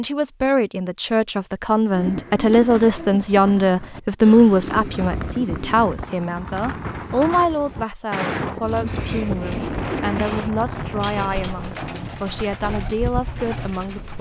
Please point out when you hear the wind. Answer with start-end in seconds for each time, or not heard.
4.5-14.1.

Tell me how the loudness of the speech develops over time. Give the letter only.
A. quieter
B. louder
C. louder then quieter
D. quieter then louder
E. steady
A.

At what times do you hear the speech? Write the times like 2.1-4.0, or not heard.
0.0-14.1.